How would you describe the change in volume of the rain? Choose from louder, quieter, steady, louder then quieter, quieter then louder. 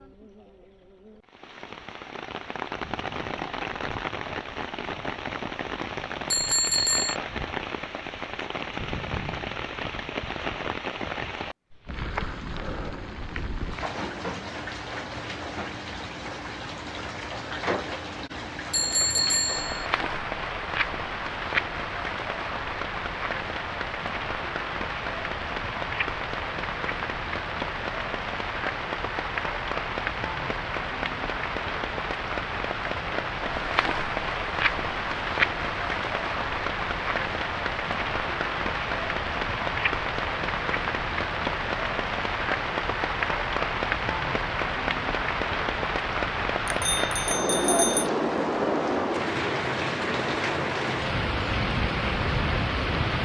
louder.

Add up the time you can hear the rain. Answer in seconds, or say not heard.
53 s.